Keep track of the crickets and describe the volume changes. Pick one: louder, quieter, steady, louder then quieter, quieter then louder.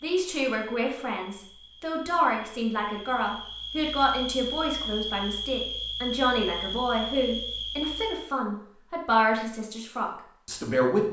louder.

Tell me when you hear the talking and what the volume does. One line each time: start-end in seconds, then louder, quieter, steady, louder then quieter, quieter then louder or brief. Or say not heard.
0.0-11.0 steady.